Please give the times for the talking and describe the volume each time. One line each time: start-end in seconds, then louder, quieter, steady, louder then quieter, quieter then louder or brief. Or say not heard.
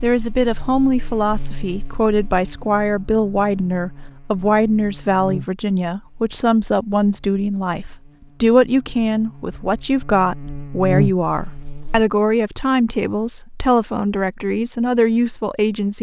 0.0-15.9 steady.